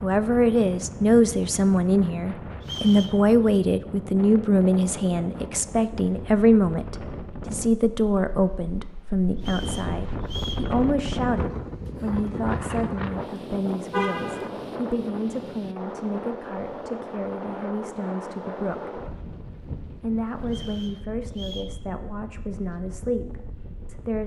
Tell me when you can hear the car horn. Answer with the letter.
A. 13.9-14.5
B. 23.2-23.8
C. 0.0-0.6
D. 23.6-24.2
A.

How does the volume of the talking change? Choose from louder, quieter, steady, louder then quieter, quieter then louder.
quieter.